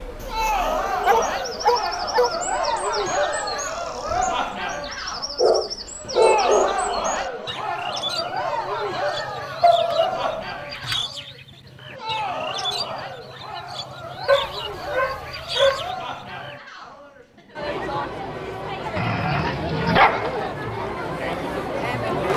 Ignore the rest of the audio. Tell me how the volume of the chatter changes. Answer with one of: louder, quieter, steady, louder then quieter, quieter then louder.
quieter then louder.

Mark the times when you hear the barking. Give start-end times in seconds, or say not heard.
0.4-2.3, 5.3-6.8, 9.6-11.0, 14.2-15.9, 18.9-20.5.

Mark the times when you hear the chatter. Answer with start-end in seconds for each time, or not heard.
0.1-22.3.